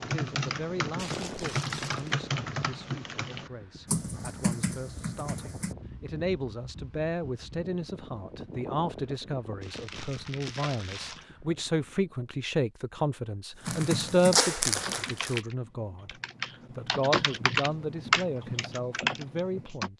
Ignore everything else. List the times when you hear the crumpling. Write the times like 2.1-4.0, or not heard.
0.9-2.1, 9.6-11.2, 13.7-15.4.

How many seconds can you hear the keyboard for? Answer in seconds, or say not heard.
12 s.